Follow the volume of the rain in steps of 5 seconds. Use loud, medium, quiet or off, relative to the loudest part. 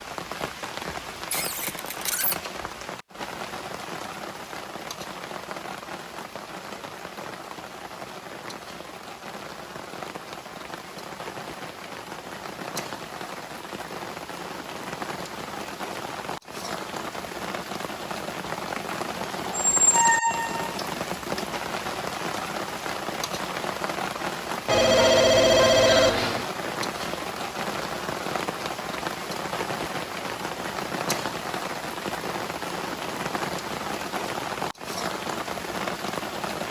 medium, medium, medium, loud, loud, loud, loud, loud.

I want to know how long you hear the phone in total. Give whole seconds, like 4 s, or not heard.
2 s.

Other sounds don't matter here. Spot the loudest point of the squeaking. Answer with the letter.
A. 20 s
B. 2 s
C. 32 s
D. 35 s
A.